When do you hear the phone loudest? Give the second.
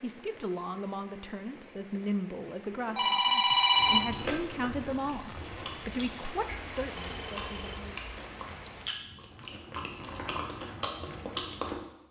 4 s.